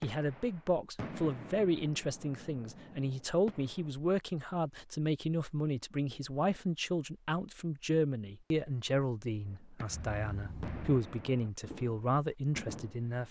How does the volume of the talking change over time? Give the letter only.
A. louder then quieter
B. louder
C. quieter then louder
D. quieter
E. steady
E.